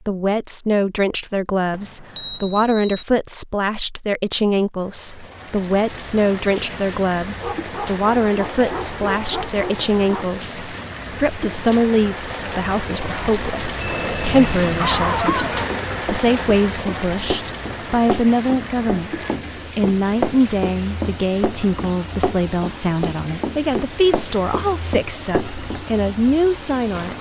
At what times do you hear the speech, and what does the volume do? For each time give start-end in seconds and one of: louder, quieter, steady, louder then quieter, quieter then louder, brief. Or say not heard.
0.1-27.1 steady.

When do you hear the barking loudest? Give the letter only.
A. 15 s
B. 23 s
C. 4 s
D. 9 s
A.